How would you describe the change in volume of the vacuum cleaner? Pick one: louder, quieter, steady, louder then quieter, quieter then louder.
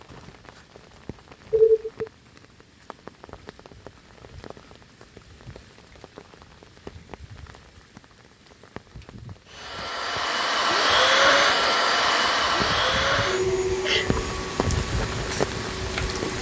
quieter.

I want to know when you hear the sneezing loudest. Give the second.
2 s.